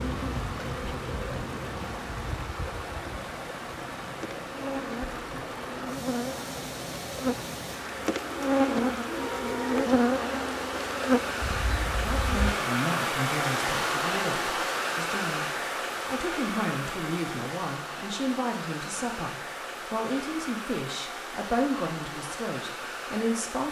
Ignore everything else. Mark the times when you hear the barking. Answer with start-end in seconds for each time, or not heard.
not heard.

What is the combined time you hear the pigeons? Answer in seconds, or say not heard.
2 s.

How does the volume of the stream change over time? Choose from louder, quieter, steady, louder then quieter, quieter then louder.
louder then quieter.